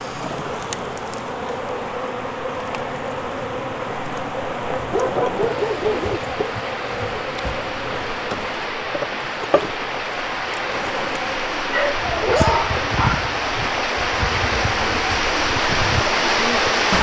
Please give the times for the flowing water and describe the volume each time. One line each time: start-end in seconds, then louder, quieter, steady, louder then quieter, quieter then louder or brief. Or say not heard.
0.0-16.9 louder.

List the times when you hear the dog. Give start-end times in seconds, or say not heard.
4.8-6.2, 11.7-13.2.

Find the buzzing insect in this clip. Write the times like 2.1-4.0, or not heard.
0.0-16.9.